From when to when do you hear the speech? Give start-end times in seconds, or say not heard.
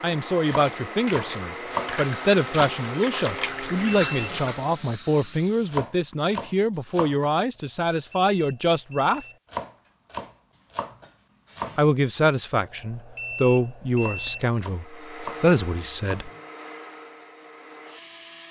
0.0-9.2, 11.8-16.3.